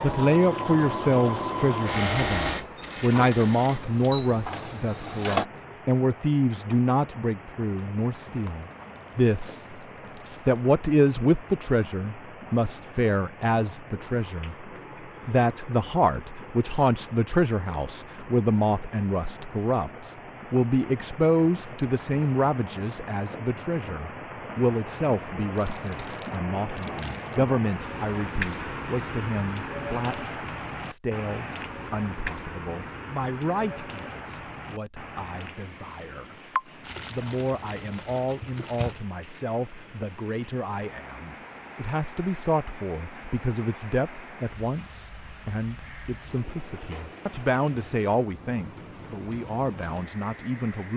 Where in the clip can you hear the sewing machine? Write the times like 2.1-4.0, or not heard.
0.0-5.5.